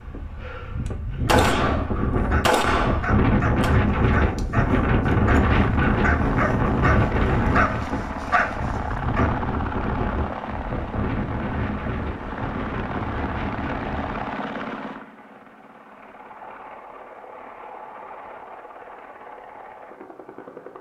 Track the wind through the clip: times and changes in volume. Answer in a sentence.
You can hear the wind from 0.0 to 14.3 s, getting louder then quieter.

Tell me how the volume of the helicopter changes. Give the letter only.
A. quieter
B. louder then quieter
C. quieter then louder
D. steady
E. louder
A.